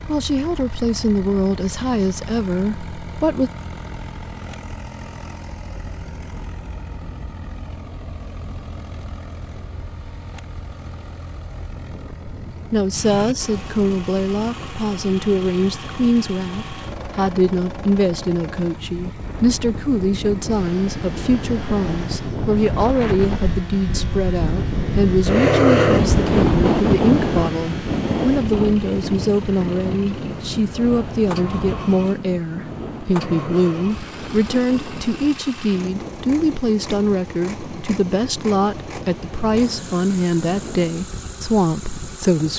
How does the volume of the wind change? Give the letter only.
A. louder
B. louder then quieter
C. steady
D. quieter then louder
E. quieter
B.